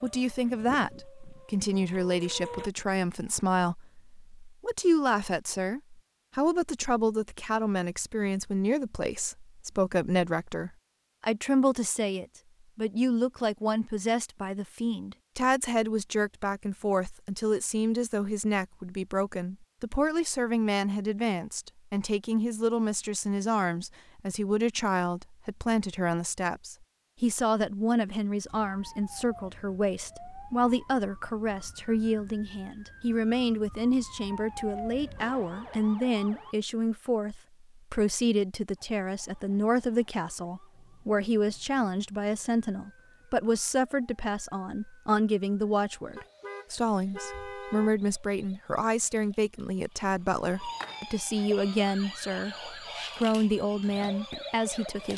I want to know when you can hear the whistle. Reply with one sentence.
You can't hear the whistle here.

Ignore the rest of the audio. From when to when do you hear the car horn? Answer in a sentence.
You can hear the car horn from 46.1 to 48.0 s.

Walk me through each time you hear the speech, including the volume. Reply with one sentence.
The speech can be heard from 0.0 to 55.1 s, at a steady volume.